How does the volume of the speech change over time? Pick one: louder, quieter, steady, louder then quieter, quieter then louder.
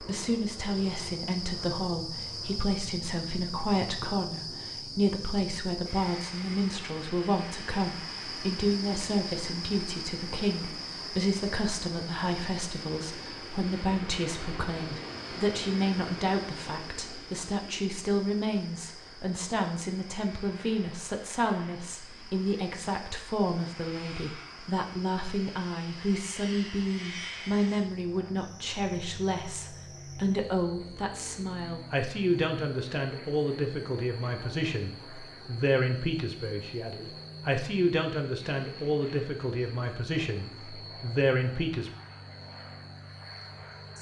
steady.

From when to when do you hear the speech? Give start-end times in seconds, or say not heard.
0.0-41.9.